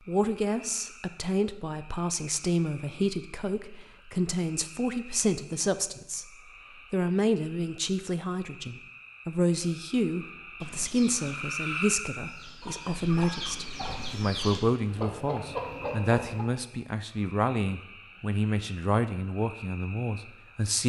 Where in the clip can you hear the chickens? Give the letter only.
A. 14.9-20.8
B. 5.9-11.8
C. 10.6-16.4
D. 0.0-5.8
C.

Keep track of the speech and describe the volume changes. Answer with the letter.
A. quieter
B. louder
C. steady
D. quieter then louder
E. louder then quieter
C.